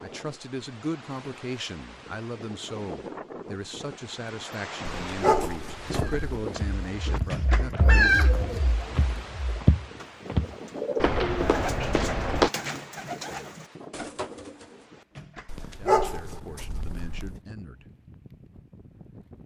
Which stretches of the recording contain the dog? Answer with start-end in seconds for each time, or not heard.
5.0-6.3, 15.4-17.4.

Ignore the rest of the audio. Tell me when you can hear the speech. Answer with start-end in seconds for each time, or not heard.
0.0-8.2, 15.8-17.9.